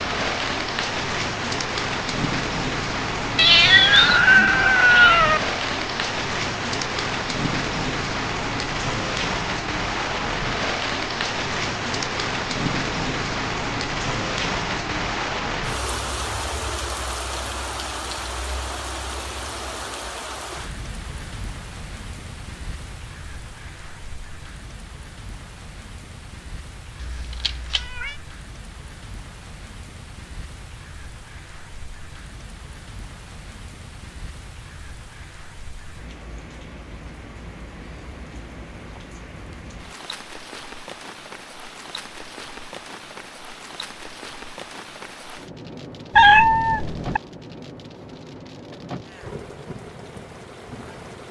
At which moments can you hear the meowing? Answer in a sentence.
The meowing can be heard from 3.4 to 5.4 s, from 27.0 to 28.1 s and from 46.1 to 47.2 s.